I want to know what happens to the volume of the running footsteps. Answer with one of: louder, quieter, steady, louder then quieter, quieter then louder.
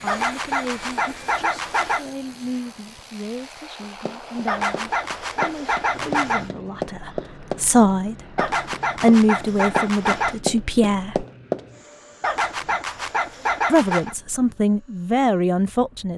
louder.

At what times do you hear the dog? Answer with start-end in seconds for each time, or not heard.
0.1-2.0, 4.5-6.5, 8.3-10.3, 12.2-14.2.